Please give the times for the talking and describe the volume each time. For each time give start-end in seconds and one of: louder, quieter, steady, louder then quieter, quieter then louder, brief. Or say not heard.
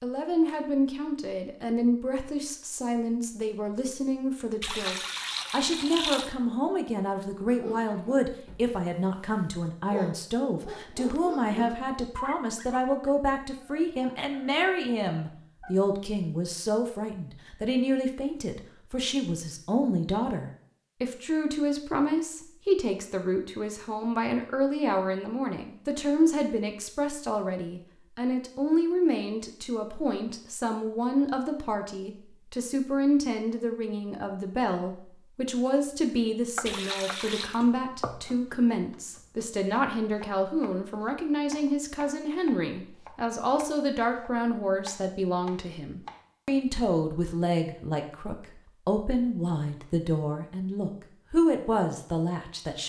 0.0-52.8 steady.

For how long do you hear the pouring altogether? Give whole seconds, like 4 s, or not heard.
3 s.